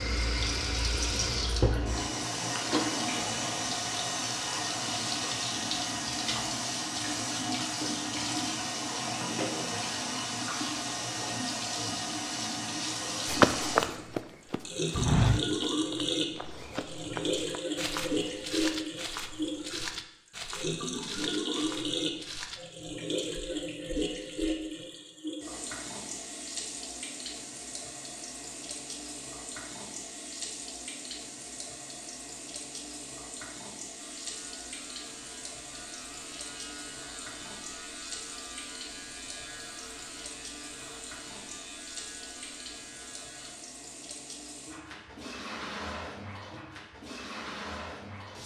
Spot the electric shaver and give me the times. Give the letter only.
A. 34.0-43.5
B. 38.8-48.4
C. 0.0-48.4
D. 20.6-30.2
A.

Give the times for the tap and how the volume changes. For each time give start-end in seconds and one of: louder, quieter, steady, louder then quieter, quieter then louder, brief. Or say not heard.
0.0-48.4 quieter.